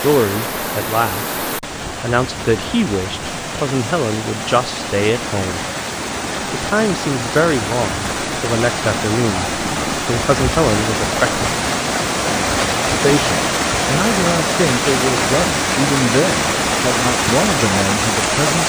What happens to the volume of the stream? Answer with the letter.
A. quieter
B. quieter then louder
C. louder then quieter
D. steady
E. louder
E.